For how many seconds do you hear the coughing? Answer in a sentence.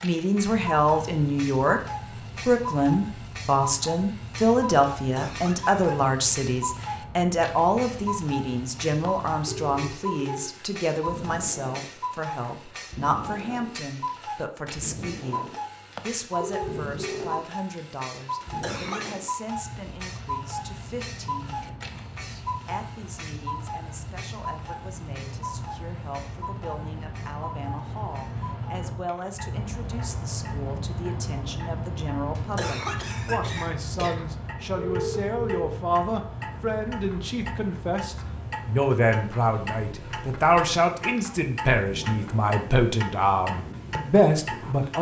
You can hear the coughing for 4 seconds altogether.